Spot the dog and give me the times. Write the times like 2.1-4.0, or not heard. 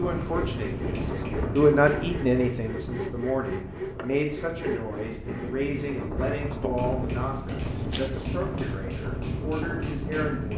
not heard.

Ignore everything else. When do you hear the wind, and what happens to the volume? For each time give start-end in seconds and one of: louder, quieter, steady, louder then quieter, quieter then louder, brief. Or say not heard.
0.0-10.5 quieter then louder.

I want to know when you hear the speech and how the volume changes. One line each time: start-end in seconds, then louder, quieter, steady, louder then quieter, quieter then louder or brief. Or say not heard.
0.0-10.5 quieter.